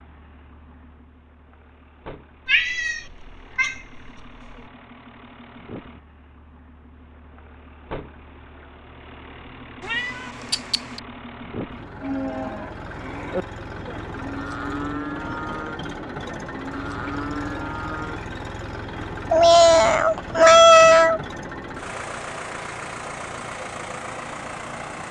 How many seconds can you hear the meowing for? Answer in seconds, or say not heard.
5 s.